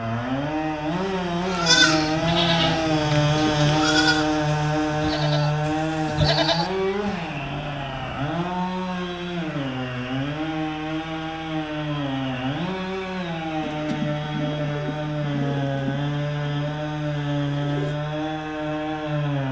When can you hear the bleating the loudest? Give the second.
2 s.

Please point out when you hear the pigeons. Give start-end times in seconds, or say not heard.
13.6-17.9.